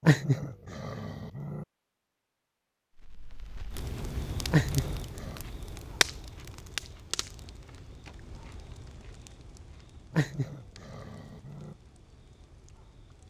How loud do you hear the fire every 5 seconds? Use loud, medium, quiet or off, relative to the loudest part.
loud, loud, quiet.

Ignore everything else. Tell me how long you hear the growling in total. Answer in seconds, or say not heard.
4 s.